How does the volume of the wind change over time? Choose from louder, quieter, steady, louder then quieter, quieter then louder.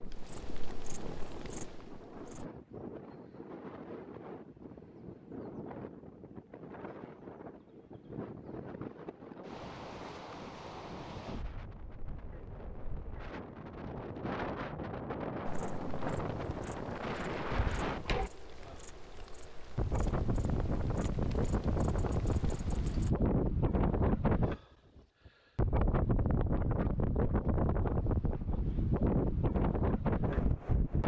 louder.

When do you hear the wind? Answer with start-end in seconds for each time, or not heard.
0.0-31.0.